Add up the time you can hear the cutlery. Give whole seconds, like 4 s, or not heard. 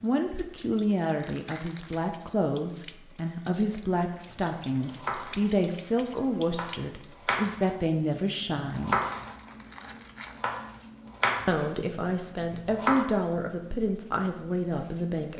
not heard.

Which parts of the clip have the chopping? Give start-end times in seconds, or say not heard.
4.8-5.7, 6.5-7.8, 8.7-9.5, 10.3-11.7, 12.5-13.1.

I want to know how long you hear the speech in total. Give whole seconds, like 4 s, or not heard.
13 s.